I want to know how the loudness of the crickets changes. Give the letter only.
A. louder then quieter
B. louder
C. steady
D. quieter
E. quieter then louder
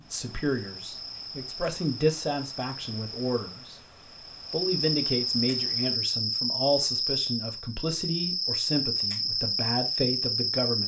B.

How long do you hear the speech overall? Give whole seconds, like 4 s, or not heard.
10 s.